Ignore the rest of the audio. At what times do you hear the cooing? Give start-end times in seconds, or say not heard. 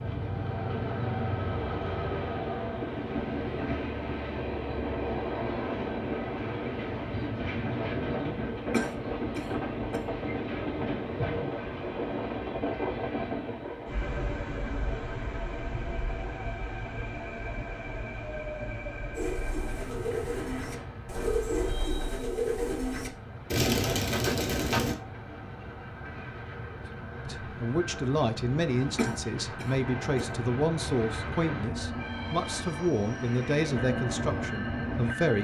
19.1-24.9.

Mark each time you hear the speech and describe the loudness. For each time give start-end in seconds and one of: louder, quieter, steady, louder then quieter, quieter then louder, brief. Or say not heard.
27.2-35.4 steady.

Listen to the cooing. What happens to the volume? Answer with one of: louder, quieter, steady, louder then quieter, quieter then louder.
louder.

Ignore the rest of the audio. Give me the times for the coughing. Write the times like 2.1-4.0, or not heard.
8.7-10.0, 28.9-30.2.